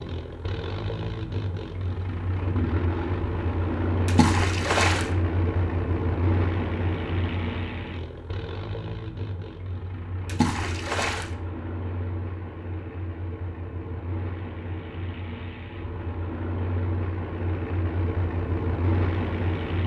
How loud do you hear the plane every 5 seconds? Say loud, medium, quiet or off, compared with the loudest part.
loud, loud, medium, loud.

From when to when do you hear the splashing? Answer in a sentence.
The splashing can be heard from 4.0 to 5.0 s and from 10.2 to 11.2 s.